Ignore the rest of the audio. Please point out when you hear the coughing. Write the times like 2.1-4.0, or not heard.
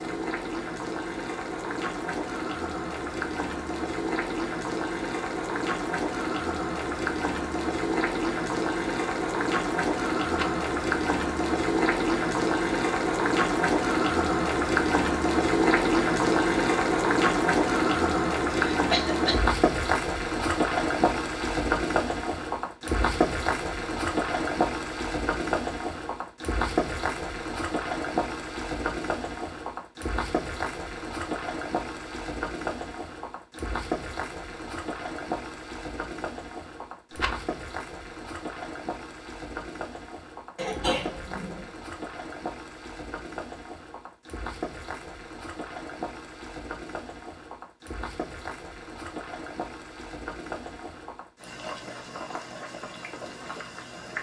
18.7-19.5, 40.5-41.7.